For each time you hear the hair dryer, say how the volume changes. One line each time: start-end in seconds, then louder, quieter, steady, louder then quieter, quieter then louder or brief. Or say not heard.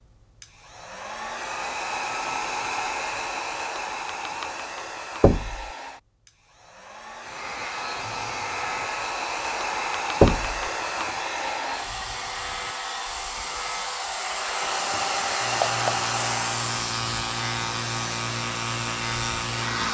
0.4-19.8 quieter then louder.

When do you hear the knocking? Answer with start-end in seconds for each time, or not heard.
5.2-5.7, 10.2-10.7.